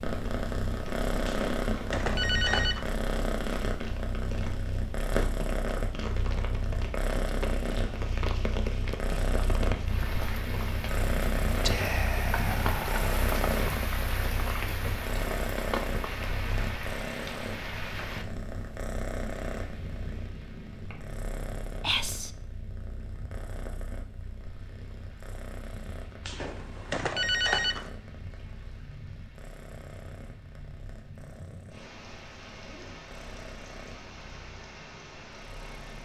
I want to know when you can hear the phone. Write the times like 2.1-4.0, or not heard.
1.2-2.9, 26.2-27.9.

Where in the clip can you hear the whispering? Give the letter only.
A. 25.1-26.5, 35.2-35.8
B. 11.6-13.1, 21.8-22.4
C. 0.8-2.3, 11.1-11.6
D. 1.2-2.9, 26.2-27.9
B.